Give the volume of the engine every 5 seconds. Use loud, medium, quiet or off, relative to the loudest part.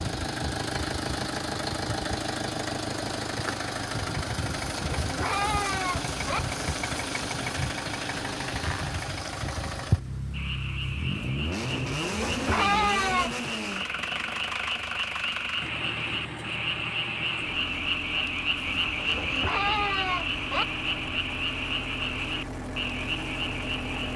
loud, loud, loud, medium, medium.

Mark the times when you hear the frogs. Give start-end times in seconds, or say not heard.
10.3-24.1.